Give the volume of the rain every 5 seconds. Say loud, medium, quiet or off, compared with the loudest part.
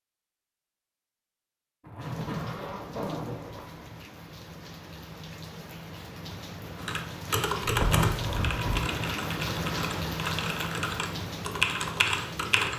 medium, loud, loud.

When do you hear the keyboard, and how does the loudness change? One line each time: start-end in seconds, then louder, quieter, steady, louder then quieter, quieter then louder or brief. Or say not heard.
6.8-12.7 quieter then louder.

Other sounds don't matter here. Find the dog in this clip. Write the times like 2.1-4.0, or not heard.
not heard.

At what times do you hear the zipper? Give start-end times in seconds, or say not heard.
1.8-3.9, 7.6-8.9.